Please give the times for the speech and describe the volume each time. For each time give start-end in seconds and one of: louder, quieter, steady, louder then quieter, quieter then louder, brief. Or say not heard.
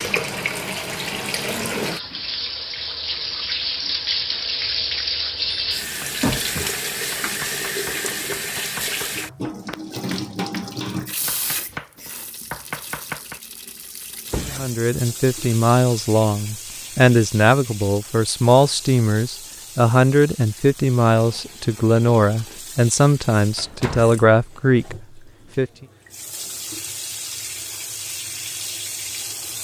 14.4-25.7 steady.